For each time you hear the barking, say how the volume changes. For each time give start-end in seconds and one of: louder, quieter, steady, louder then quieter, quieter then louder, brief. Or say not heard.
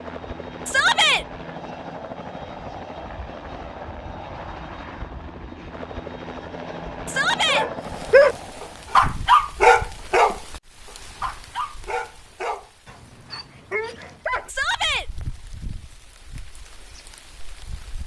7.5-14.5 quieter.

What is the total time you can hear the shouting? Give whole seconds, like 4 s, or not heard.
2 s.